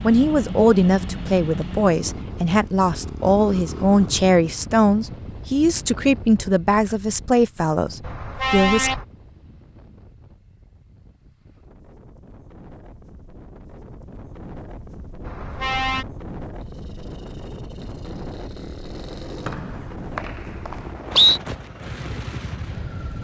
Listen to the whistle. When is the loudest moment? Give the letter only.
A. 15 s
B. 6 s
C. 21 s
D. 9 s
C.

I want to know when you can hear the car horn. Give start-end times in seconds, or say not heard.
8.0-9.1, 15.2-16.1.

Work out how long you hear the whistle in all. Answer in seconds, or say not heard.
2 s.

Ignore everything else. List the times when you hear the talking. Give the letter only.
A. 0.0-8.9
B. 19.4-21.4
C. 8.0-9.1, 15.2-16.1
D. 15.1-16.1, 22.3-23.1
A.